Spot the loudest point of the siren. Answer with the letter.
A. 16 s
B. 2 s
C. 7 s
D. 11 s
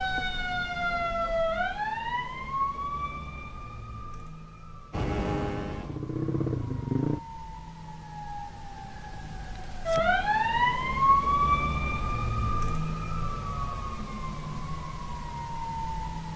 D.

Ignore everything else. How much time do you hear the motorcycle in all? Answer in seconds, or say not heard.
2 s.